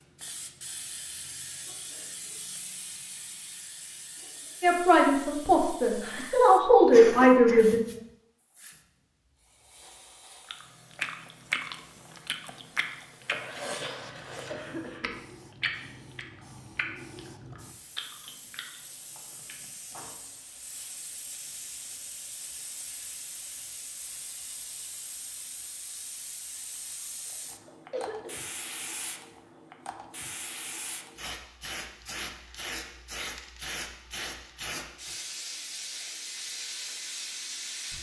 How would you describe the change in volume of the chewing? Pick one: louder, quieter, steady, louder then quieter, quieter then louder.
quieter.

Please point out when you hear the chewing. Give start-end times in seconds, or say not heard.
10.4-20.4.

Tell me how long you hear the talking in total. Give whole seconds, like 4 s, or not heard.
3 s.